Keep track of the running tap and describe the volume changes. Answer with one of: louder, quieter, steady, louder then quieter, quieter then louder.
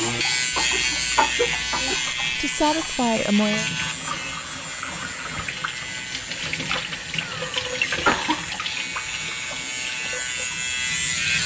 louder then quieter.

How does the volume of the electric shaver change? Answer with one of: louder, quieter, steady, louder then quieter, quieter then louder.
quieter then louder.